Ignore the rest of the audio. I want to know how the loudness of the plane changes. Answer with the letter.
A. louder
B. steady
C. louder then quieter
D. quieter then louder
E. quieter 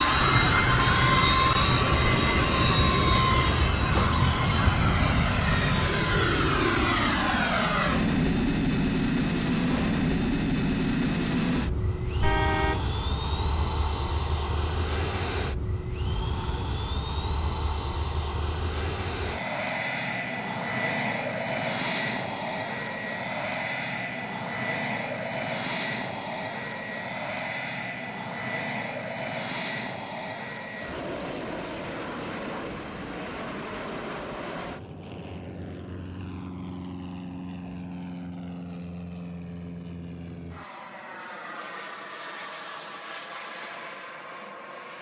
E.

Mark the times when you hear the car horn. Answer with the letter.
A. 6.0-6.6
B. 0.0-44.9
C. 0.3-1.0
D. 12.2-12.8
D.